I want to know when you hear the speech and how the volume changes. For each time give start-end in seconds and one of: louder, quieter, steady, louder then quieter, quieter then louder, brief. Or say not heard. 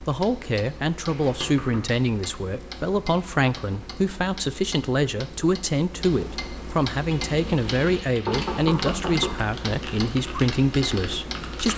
0.0-11.7 steady.